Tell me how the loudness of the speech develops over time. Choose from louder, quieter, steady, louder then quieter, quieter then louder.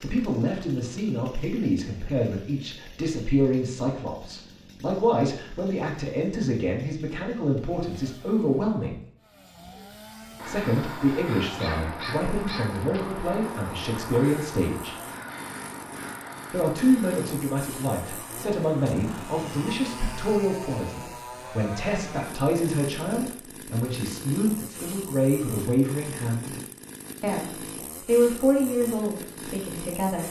steady.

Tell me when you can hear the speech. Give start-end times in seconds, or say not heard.
0.0-9.0, 10.4-14.9, 16.5-26.6, 27.2-30.2.